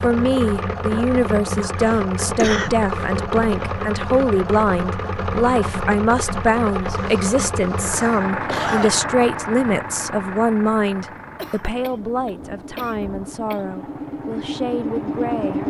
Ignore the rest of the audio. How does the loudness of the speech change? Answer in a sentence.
The loudness of the speech goes down.